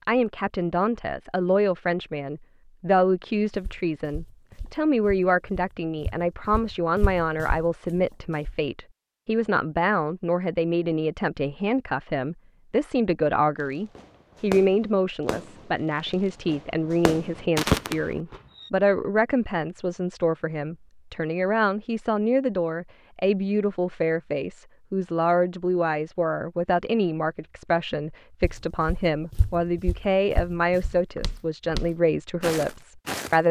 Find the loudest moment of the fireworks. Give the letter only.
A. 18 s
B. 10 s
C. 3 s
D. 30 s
A.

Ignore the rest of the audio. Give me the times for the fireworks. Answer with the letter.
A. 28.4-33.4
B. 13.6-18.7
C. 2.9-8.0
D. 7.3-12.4
B.